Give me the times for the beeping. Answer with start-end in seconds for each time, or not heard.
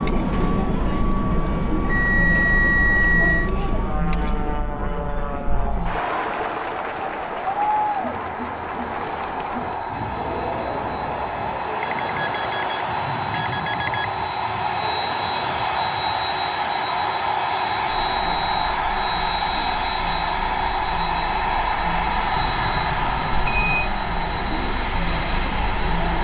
1.9-3.5, 11.8-14.1, 22.4-23.9.